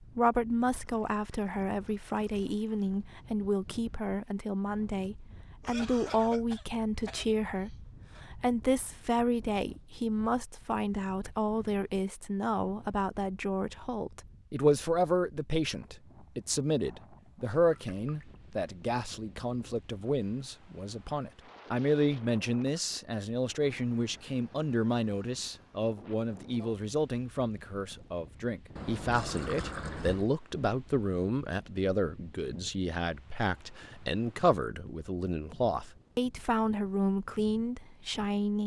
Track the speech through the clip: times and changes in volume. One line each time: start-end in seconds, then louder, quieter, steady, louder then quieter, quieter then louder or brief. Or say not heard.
0.0-38.6 steady.